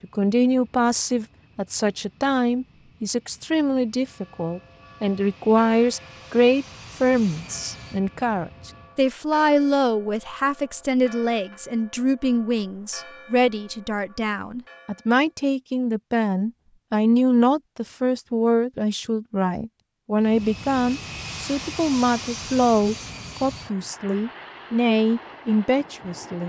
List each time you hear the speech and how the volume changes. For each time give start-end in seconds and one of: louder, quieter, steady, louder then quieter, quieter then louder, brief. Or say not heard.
0.0-26.4 steady.